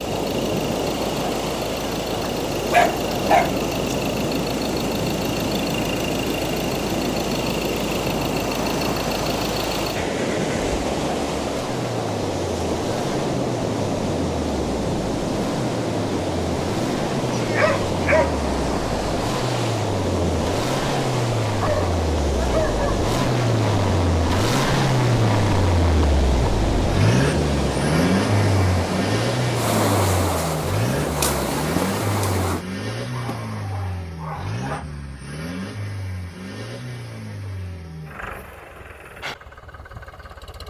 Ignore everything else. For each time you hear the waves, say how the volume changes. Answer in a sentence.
You can hear the waves from 0.0 to 32.6 s, at a steady volume.